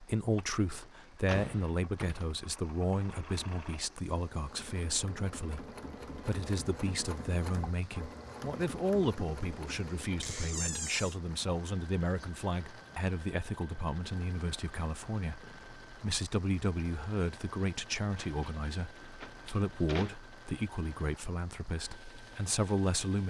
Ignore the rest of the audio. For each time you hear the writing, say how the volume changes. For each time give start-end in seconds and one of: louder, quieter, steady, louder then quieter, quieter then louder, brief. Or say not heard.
not heard.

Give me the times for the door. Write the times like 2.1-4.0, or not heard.
0.7-2.7, 10.2-11.2, 18.1-20.1.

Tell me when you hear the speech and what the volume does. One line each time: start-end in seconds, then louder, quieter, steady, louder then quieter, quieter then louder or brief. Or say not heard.
0.0-23.2 steady.